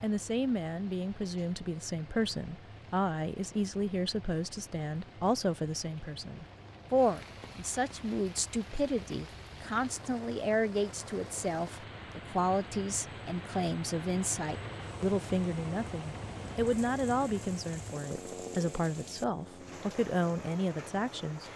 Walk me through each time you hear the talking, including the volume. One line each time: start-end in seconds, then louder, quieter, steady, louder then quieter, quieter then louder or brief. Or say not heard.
0.0-21.5 steady.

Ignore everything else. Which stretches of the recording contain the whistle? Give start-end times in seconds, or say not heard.
not heard.